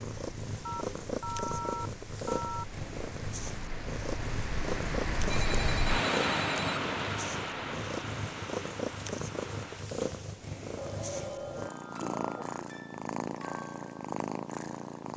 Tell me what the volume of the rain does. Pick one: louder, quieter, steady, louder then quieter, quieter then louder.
louder then quieter.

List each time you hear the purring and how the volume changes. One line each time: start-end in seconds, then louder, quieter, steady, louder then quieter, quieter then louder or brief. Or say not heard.
0.0-15.1 steady.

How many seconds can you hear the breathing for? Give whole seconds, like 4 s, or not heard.
not heard.